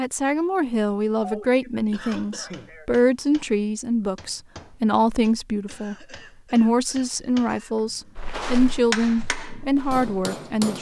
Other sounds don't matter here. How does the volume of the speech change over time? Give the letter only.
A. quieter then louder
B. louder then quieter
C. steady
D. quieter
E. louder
C.